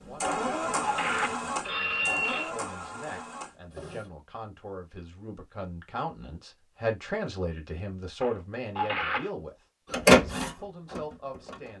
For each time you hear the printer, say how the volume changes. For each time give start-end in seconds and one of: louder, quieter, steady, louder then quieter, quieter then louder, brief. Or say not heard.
0.0-4.1 quieter
9.9-11.7 brief.